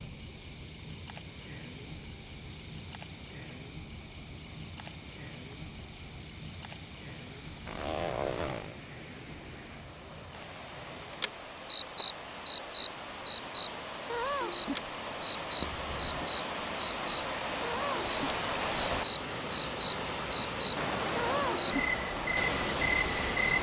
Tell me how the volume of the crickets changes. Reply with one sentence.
The volume of the crickets goes down.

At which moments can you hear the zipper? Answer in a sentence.
The zipper can be heard from 7.7 to 8.8 s and from 15.6 to 16.4 s.